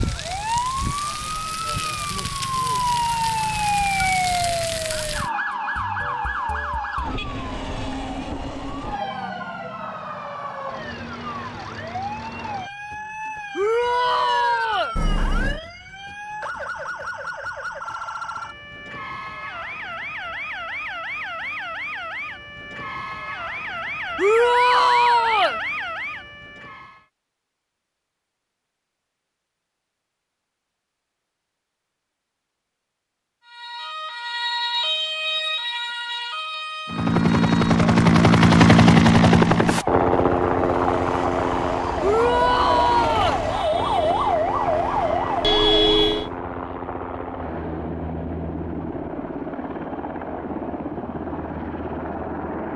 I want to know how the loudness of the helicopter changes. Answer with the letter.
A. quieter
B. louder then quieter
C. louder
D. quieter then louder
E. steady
A.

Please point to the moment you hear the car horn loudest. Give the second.
46 s.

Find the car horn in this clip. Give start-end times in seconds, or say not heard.
14.9-15.6, 45.4-46.3.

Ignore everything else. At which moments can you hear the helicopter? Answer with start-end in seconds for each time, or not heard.
36.9-52.7.